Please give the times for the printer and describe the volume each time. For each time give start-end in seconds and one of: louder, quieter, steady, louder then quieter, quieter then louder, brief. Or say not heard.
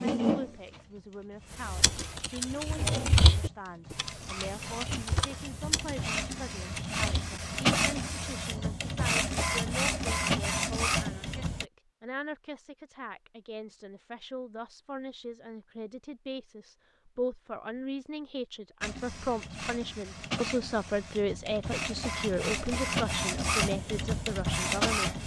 0.0-11.7 louder
18.8-25.2 louder.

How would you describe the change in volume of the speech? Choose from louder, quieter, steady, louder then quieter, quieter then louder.
louder.